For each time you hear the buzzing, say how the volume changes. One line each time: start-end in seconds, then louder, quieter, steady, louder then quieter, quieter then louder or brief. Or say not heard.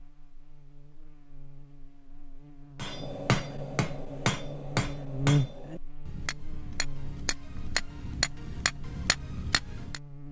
0.0-10.2 louder then quieter.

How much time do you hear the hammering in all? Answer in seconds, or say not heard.
7 s.